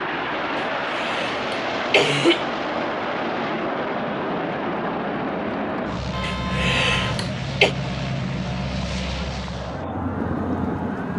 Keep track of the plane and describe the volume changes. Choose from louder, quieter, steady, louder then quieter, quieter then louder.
steady.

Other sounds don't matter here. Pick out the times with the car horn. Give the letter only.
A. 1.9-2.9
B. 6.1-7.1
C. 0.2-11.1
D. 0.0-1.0
B.